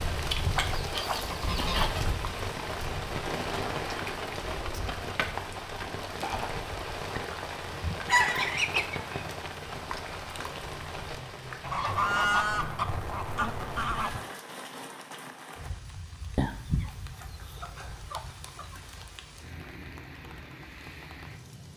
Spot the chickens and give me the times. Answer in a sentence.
The chickens can be heard from 0.6 to 2.0 s, from 7.3 to 9.3 s, from 11.6 to 14.2 s and from 16.4 to 18.8 s.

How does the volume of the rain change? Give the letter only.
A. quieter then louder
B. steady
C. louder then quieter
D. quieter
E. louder
D.